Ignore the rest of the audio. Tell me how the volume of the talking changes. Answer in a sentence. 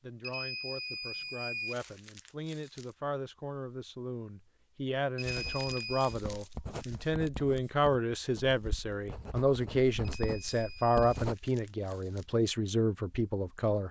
The loudness of the talking goes up.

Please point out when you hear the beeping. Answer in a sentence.
You can hear the beeping from 0.2 to 1.8 s, from 5.2 to 6.2 s and from 10.2 to 11.2 s.